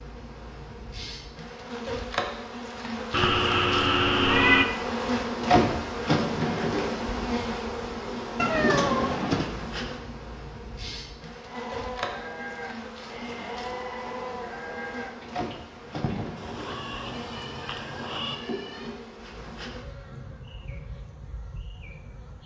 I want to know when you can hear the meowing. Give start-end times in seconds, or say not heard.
3.1-4.7, 8.3-9.6, 16.4-18.4.